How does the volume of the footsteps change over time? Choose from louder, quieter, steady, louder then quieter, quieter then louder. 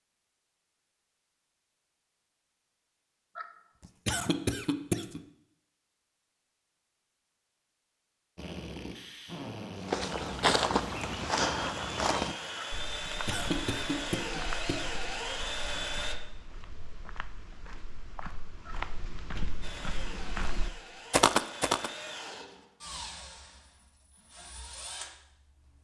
quieter then louder.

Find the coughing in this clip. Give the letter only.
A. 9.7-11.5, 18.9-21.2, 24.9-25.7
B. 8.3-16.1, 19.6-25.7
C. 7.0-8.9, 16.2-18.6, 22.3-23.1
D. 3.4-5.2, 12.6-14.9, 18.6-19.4
D.